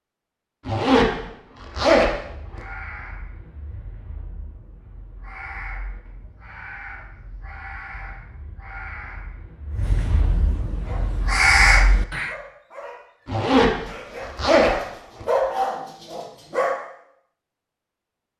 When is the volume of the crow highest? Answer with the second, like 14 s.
12 s.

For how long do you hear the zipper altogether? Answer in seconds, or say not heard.
4 s.